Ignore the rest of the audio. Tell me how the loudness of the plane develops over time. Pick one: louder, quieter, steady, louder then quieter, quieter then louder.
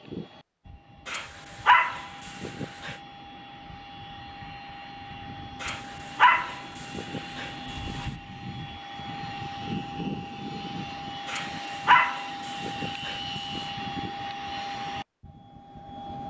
louder.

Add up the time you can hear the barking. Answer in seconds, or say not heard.
7 s.